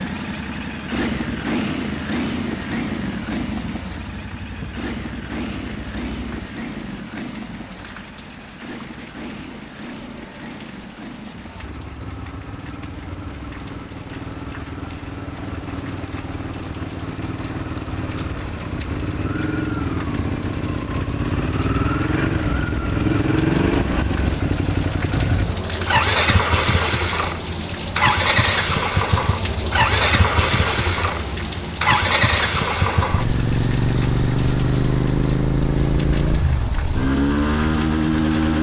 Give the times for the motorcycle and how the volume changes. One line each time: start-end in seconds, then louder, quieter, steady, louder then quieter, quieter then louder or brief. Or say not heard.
0.0-38.5 quieter then louder.